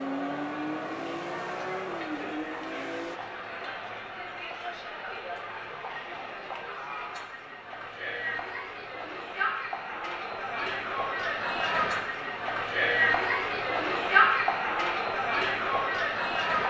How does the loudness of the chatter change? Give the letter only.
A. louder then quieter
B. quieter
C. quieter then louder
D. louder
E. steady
D.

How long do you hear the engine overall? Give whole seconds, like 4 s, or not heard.
3 s.